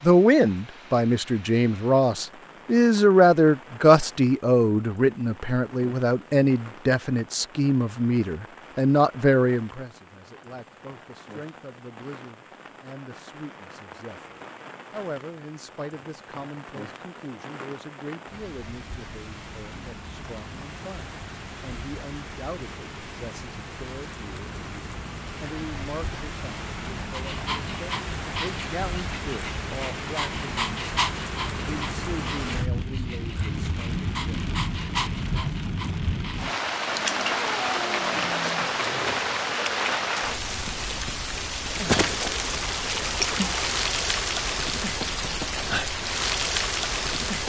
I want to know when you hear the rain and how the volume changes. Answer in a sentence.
The rain can be heard from 0.0 to 47.4 s, getting louder.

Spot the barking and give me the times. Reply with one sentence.
The barking can be heard from 27.1 to 39.2 s.